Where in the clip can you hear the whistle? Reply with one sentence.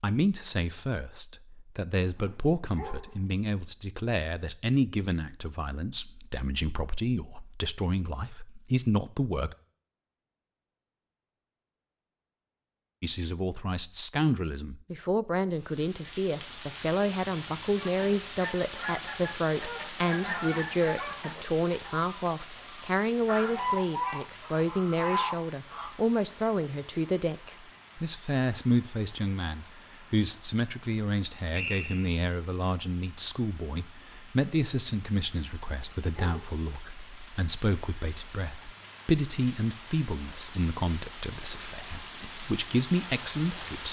You can hear the whistle from 31.5 to 32.1 s.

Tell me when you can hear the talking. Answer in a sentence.
The talking can be heard from 0.0 to 9.6 s and from 13.0 to 43.8 s.